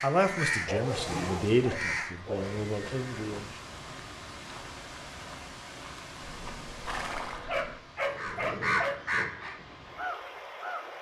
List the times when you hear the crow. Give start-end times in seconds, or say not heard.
0.0-2.6, 8.0-10.9.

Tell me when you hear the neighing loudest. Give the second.
7 s.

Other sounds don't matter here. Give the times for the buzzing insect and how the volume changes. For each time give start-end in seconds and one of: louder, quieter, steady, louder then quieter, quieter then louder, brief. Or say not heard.
not heard.